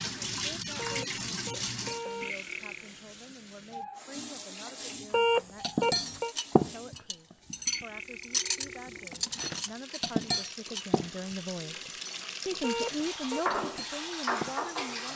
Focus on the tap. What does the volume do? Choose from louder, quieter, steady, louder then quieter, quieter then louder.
quieter then louder.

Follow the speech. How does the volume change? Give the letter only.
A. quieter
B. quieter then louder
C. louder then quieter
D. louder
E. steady
D.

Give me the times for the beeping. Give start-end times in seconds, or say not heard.
0.8-2.4, 5.1-6.3, 12.6-13.4.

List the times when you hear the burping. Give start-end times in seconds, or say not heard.
2.2-3.0, 7.7-9.2.